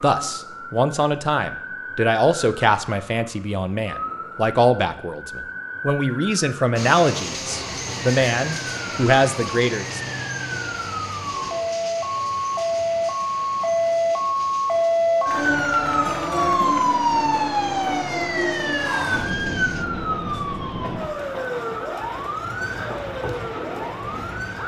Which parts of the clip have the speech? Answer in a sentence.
You can hear the speech from 0.0 to 10.0 s.